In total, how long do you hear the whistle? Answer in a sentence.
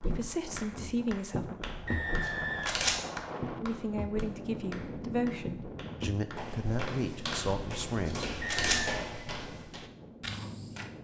The whistle can be heard for 2 seconds in total.